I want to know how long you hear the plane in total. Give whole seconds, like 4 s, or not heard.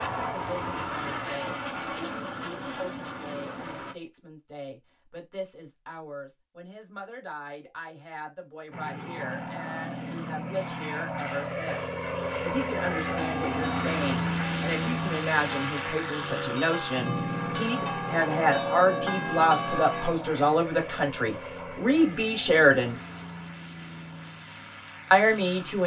21 s.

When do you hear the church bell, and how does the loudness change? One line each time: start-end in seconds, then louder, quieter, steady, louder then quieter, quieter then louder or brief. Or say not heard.
13.0-20.2 louder.